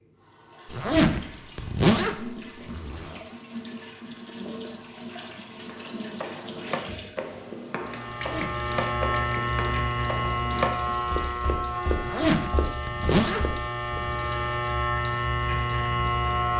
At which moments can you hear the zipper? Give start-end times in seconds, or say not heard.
0.7-3.2, 8.2-8.7, 11.9-14.6.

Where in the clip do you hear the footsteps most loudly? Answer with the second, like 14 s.
11 s.